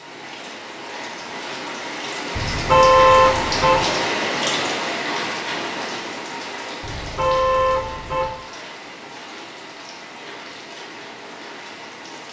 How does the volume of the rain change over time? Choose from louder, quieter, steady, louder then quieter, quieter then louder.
louder then quieter.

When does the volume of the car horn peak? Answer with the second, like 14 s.
3 s.